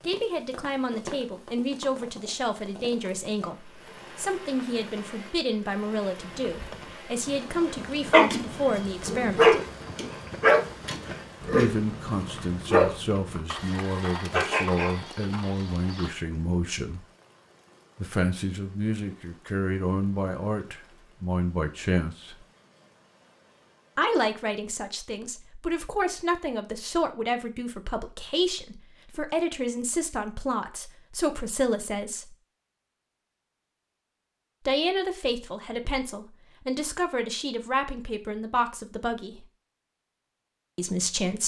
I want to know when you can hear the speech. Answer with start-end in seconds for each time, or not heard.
0.0-9.6, 11.5-17.1, 17.9-22.4, 23.9-32.4, 34.6-39.5, 40.8-41.4.